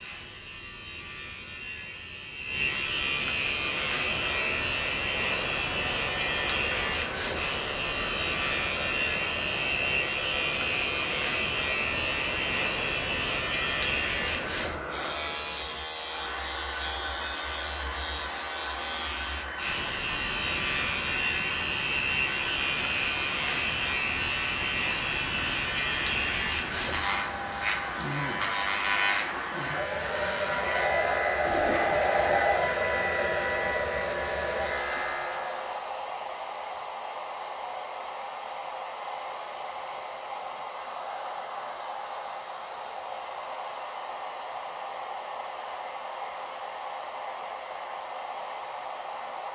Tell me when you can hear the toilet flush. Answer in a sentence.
You can hear the toilet flush from 31.4 to 32.5 s.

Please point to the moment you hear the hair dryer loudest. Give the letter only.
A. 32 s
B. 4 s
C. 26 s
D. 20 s
A.